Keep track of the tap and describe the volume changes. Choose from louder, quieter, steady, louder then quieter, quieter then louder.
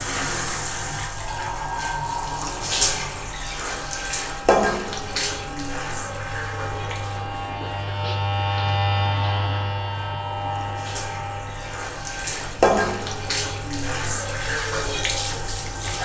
quieter then louder.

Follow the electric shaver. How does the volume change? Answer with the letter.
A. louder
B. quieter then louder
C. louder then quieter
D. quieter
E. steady
C.